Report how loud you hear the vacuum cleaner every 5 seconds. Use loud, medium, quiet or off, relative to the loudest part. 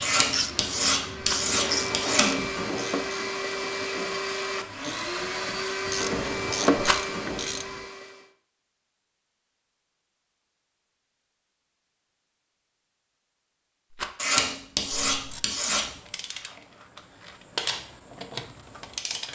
loud, loud, off, off.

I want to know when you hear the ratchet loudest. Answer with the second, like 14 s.
7 s.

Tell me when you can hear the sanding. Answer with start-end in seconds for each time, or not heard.
0.0-2.4, 14.2-15.8.